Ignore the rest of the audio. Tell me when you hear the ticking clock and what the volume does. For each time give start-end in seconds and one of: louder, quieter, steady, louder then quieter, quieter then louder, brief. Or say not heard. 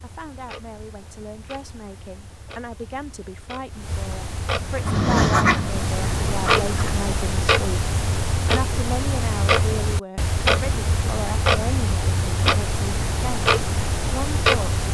0.0-14.8 louder.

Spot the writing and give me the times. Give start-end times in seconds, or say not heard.
4.7-7.0.